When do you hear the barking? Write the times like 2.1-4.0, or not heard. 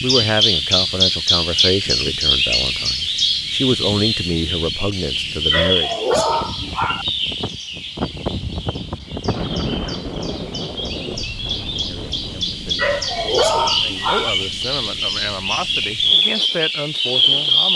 5.5-7.0, 12.8-14.3.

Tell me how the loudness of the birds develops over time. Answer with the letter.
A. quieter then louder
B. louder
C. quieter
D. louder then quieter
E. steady
A.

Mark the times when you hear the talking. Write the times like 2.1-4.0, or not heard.
0.0-5.9, 11.8-17.7.